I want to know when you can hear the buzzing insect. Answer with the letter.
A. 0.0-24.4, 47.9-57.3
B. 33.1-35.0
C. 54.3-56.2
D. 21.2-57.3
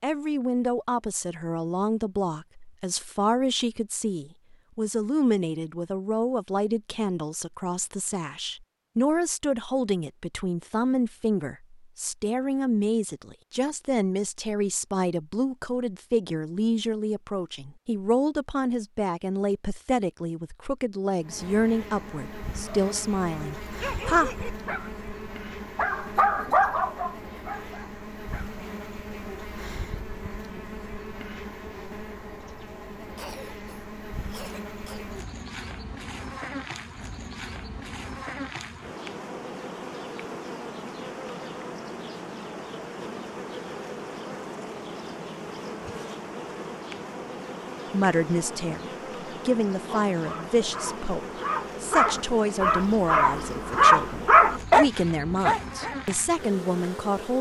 D.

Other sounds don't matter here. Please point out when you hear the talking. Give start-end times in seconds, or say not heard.
0.0-24.4, 47.9-57.3.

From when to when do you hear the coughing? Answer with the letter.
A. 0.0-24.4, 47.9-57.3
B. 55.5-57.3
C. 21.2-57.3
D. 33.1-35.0
D.